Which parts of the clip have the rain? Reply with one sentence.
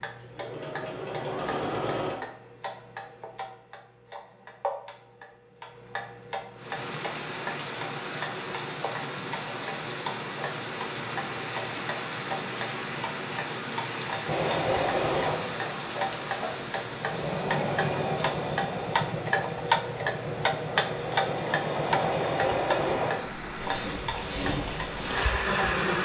The rain can be heard from 6.5 to 25.9 s.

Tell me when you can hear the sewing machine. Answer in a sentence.
The sewing machine can be heard from 0.0 to 2.1 s and from 14.2 to 25.9 s.